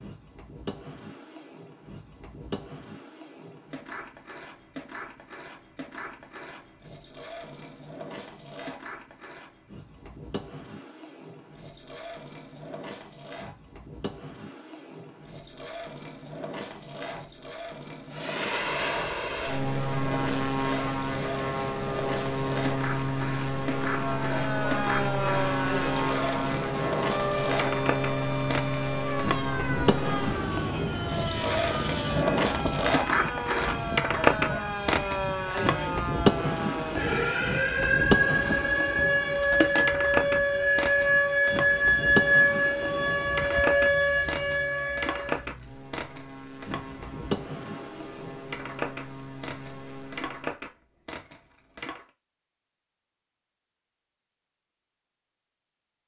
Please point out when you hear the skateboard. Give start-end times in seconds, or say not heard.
0.0-52.0.